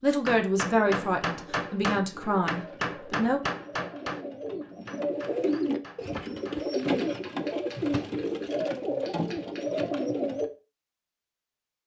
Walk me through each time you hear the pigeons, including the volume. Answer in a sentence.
The pigeons can be heard from 0.6 to 10.5 s, getting louder.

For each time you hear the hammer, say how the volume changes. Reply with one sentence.
The hammer can be heard from 0.2 to 9.8 s, getting quieter.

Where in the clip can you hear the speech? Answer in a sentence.
You can hear the speech from 0.0 to 3.4 s.